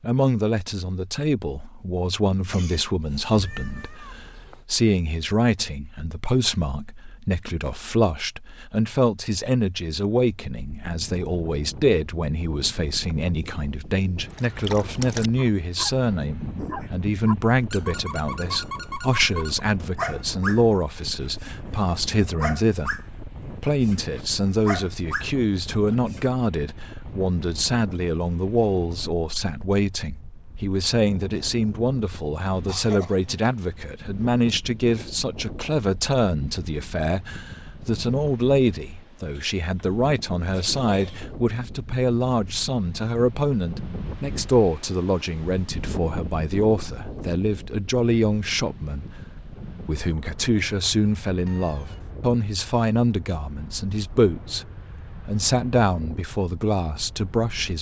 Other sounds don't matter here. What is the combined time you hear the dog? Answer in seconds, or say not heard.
12 s.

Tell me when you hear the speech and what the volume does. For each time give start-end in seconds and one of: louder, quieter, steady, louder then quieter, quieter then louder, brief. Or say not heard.
0.0-57.7 steady.